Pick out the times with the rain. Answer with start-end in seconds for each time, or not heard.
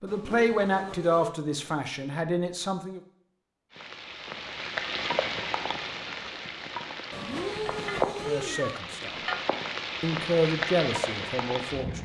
3.7-12.0.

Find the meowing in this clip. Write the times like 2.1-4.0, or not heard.
0.1-1.4, 7.1-8.8.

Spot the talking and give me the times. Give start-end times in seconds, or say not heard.
0.0-3.0, 8.2-9.2, 10.0-12.0.